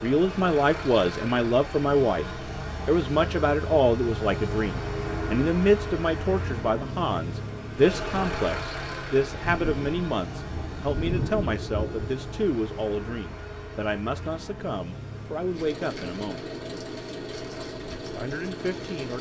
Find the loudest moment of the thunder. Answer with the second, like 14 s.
11 s.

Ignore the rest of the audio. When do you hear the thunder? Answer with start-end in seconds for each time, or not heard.
9.2-12.4.